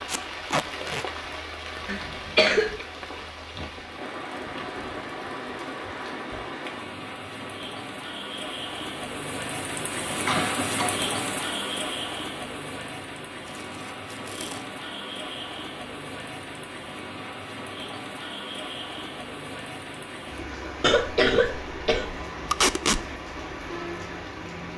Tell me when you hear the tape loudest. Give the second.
23 s.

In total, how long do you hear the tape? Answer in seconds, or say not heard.
3 s.